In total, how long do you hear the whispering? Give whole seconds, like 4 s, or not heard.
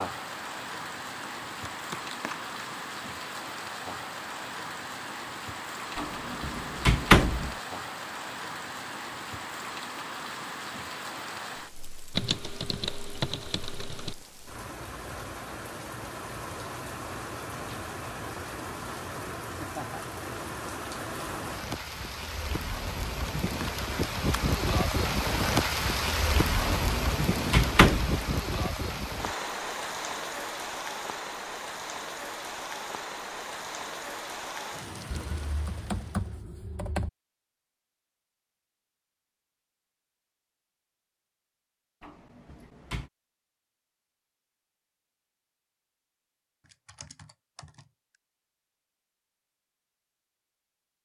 not heard.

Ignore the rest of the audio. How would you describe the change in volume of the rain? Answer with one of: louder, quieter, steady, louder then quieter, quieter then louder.
louder then quieter.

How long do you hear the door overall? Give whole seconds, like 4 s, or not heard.
4 s.